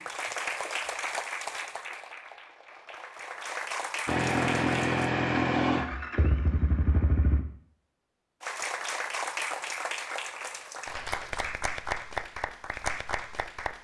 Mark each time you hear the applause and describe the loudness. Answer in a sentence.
The applause can be heard from 0.0 to 5.1 s, getting quieter then louder; and from 8.4 to 13.7 s, at a steady volume.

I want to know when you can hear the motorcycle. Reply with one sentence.
The motorcycle can be heard from 4.0 to 7.4 s.